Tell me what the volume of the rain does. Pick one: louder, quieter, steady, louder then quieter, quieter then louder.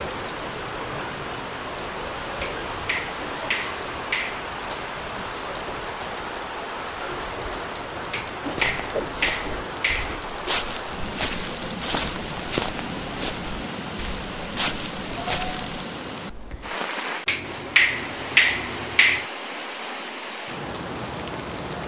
steady.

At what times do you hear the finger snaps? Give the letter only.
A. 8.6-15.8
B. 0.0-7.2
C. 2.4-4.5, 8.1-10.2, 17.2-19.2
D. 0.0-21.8
C.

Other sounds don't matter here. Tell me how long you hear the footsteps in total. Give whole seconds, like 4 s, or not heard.
7 s.